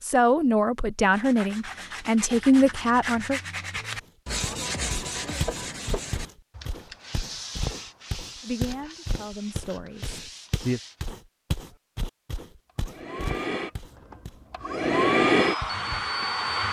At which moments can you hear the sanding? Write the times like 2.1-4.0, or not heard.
1.0-11.2.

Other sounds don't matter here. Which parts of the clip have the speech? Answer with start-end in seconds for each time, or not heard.
0.0-3.4, 8.4-10.8.